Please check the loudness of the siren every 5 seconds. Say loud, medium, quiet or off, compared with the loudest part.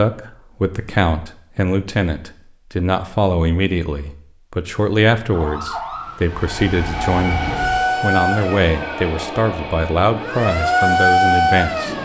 off, medium, loud.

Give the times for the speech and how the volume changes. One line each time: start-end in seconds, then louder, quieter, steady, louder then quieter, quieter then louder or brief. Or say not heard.
0.0-11.9 steady.